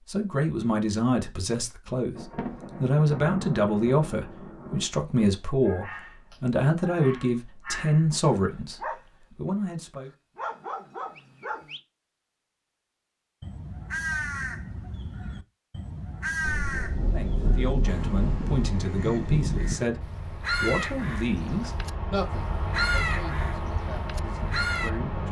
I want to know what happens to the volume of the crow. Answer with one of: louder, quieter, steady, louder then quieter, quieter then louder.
steady.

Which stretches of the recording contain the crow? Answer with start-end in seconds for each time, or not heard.
13.4-24.9.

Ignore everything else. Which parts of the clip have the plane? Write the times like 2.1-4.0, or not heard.
17.8-25.2.